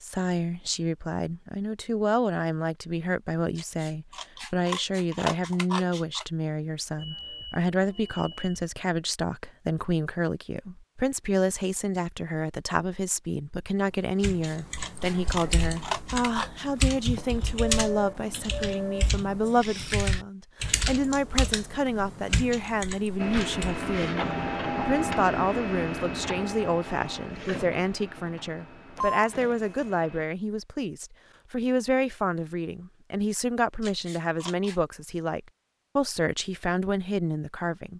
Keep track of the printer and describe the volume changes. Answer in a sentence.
The loudness of the printer goes down.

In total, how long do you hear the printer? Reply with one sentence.
The printer can be heard for 7 seconds in total.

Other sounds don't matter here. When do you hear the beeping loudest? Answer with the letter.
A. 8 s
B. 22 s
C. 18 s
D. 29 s
D.